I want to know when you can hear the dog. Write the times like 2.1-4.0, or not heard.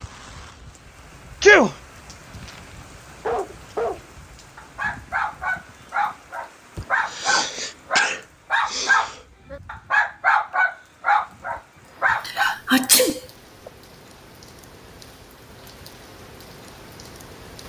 2.4-12.6.